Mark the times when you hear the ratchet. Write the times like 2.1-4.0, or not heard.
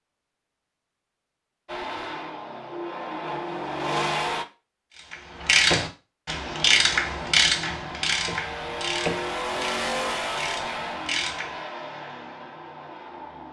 4.9-11.6.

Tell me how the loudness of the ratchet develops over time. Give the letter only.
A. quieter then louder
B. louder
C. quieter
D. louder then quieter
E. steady
C.